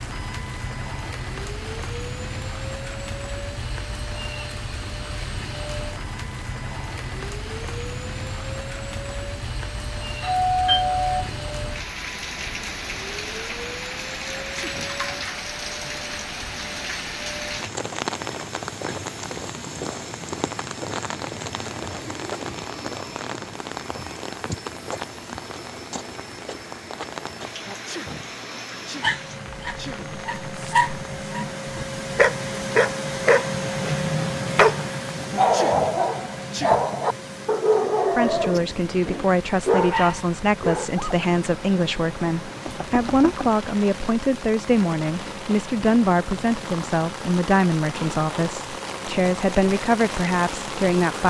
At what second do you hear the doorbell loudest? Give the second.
11 s.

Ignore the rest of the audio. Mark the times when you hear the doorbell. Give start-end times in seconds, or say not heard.
10.2-11.4, 42.6-43.6.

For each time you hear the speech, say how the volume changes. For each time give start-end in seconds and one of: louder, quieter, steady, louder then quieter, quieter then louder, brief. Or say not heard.
38.1-51.2 steady.